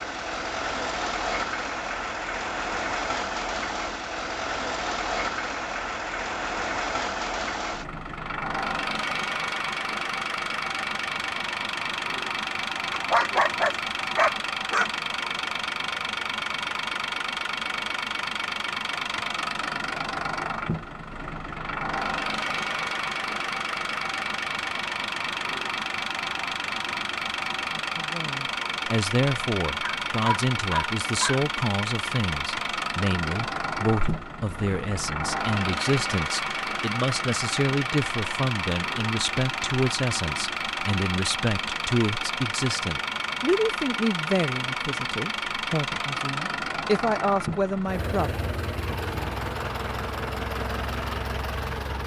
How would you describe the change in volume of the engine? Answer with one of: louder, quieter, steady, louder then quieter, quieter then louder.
steady.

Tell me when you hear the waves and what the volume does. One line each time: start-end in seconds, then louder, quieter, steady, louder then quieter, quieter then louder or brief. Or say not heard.
not heard.